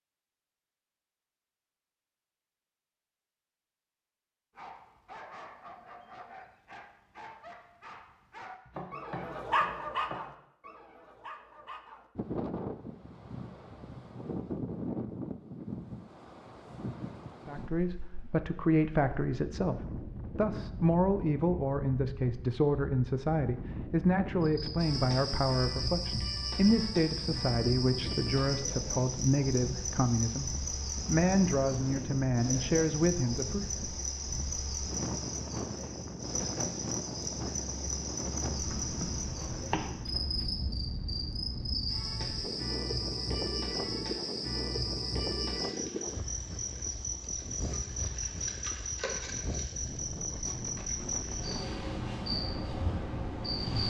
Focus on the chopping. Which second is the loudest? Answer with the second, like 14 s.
40 s.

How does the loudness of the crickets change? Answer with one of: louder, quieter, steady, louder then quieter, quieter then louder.
steady.